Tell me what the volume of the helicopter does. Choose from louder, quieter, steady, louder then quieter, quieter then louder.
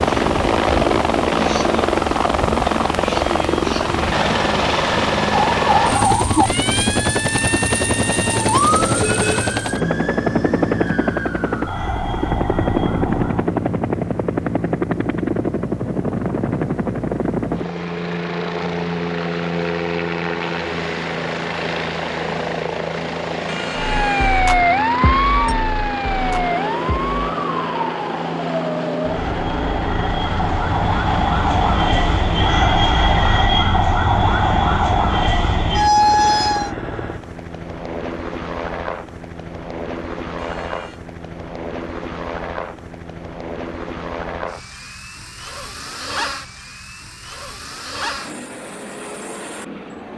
quieter.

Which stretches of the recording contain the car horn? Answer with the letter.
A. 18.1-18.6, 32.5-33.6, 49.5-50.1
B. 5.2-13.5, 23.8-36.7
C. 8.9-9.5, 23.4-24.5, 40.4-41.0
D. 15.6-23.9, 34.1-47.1
C.